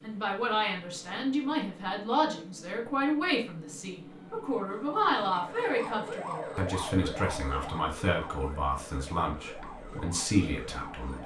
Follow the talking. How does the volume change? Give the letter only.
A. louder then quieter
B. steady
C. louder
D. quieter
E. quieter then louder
B.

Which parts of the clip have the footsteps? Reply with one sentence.
You can't hear the footsteps here.